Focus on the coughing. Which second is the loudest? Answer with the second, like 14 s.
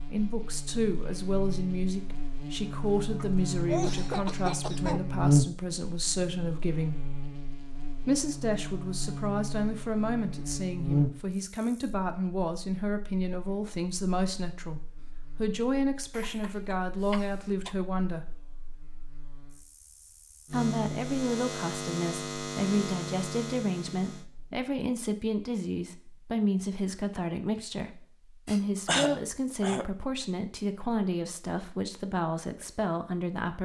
29 s.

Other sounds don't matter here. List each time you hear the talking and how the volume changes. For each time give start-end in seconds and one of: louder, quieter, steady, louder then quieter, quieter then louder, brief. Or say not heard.
0.1-7.1 steady
8.0-18.4 steady
20.5-33.5 steady.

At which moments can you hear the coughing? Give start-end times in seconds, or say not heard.
3.1-5.0, 16.1-17.8, 28.4-29.9.